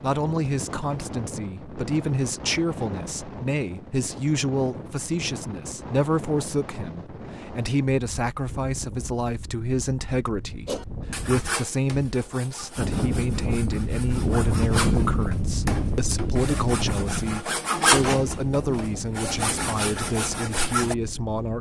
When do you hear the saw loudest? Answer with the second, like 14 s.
18 s.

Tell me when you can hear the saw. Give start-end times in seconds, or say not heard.
10.7-20.9.